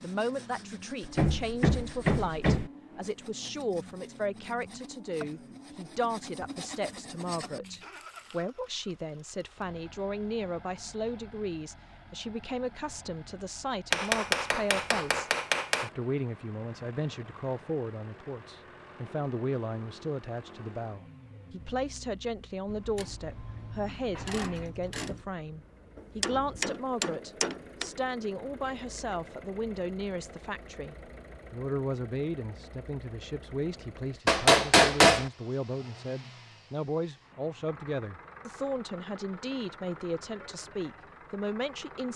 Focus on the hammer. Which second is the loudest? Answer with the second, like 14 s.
35 s.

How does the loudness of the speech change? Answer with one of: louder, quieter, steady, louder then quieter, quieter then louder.
steady.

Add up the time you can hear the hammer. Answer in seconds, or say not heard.
6 s.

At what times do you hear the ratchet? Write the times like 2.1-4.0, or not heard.
22.6-25.2.